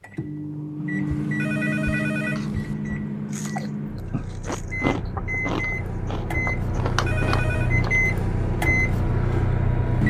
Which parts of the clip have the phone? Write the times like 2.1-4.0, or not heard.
1.1-2.8, 6.8-7.8.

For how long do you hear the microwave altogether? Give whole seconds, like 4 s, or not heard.
10 s.